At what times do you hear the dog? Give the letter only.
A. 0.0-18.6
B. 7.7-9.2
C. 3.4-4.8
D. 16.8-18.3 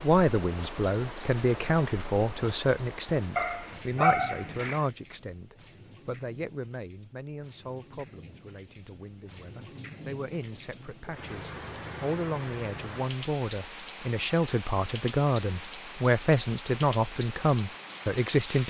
C.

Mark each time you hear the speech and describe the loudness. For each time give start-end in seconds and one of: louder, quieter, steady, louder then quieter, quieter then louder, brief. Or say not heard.
0.0-18.6 quieter then louder.